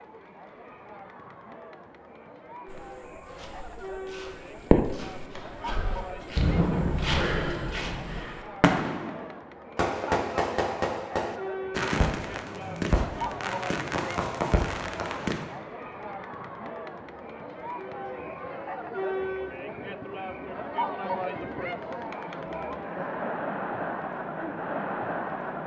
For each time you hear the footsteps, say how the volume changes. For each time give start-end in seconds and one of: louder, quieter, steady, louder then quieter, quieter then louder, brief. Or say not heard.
2.6-8.4 louder.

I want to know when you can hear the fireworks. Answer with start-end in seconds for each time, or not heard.
4.7-5.2, 6.3-15.6.